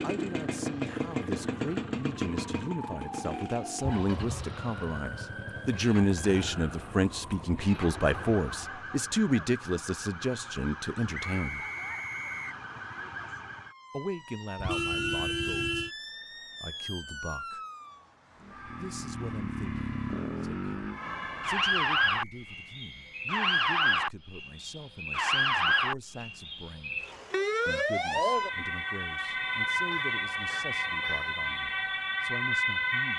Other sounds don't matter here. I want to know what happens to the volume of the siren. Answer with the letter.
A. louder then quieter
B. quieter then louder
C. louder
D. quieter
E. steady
C.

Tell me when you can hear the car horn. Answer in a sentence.
The car horn can be heard from 3.8 to 4.6 s, from 14.6 to 15.9 s and from 29.9 to 31.3 s.